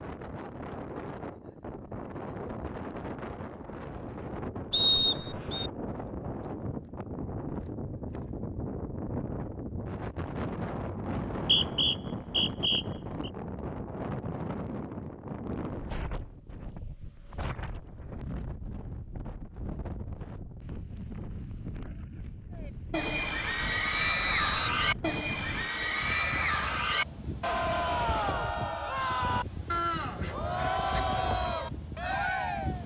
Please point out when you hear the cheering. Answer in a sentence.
You can hear the cheering from 22.6 to 32.8 s.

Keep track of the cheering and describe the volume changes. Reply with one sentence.
The volume of the cheering stays about the same.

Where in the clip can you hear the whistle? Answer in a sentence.
You can hear the whistle from 4.7 to 5.7 s, from 11.1 to 13.3 s and from 23.9 to 24.7 s.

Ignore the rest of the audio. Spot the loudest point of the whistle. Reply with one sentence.
The loudest moment of the whistle is at 5 seconds.